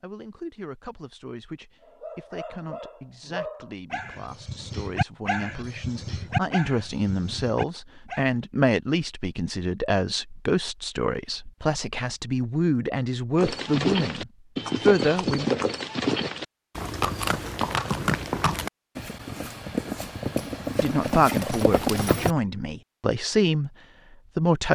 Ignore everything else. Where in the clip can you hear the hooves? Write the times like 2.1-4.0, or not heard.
13.3-22.4.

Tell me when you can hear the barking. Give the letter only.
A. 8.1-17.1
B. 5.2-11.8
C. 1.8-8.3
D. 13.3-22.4
C.